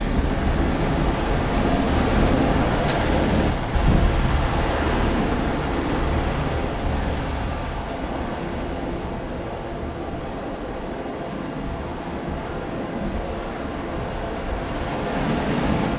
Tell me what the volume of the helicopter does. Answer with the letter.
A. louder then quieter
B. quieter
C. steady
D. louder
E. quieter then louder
B.